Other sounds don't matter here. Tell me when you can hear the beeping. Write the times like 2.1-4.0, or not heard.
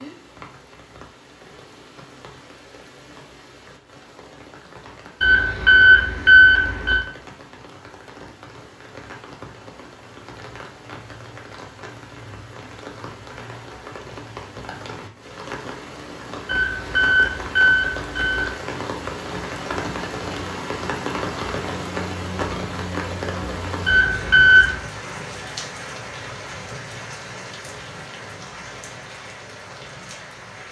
5.2-7.0, 16.4-18.5, 23.9-24.8.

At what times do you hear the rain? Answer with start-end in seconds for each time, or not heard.
0.0-30.6.